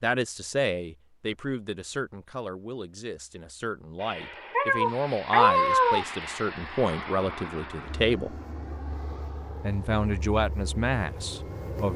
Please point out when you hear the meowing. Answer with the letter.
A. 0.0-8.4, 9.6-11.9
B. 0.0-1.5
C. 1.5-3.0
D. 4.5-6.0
D.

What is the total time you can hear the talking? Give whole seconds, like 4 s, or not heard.
11 s.